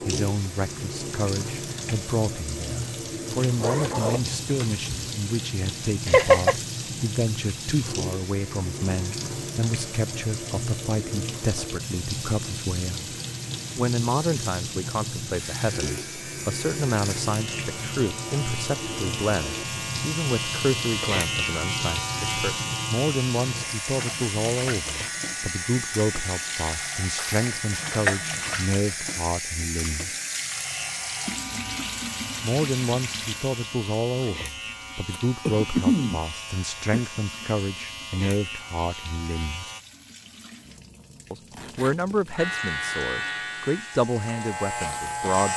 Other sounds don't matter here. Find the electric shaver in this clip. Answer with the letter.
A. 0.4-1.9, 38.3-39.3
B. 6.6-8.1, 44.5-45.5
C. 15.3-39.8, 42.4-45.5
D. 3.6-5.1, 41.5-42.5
C.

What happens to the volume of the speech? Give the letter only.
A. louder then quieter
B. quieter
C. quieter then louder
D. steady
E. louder
D.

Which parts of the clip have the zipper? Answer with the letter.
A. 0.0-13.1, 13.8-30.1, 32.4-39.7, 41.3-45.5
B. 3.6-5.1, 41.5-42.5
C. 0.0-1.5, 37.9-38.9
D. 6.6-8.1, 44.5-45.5
B.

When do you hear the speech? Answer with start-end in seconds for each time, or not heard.
0.0-13.1, 13.8-30.1, 32.4-39.7, 41.3-45.5.